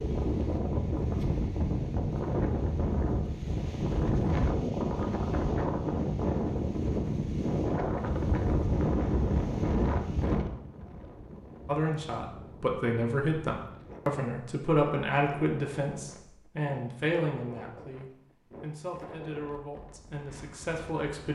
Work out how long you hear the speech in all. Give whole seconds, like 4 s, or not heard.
10 s.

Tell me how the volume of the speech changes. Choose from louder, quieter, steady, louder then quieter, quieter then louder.
quieter.